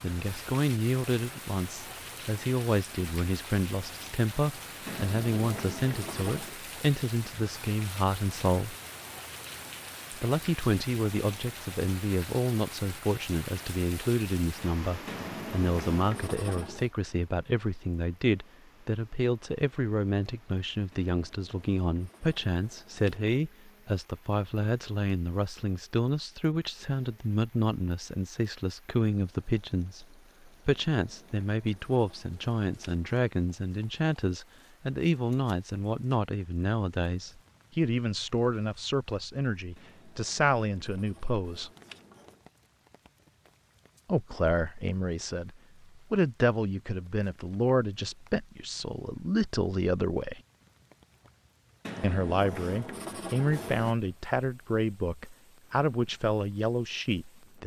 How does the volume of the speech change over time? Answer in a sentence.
The loudness of the speech stays about the same.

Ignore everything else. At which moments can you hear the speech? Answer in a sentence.
The speech can be heard from 0.0 to 8.8 s, from 10.1 to 41.7 s, from 44.0 to 50.4 s and from 52.0 to 57.6 s.